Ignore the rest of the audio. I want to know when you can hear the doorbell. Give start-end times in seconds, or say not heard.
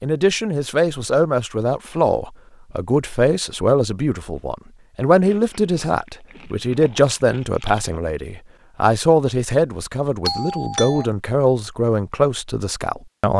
10.2-11.1.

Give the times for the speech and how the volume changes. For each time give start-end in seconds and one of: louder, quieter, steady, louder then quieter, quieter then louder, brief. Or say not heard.
0.0-13.3 steady.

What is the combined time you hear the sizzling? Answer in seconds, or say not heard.
not heard.